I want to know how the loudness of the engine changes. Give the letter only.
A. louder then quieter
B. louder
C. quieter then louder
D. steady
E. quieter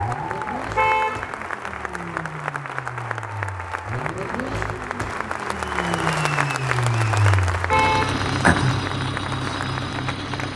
B.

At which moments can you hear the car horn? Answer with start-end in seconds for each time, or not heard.
0.8-1.8, 7.7-8.2.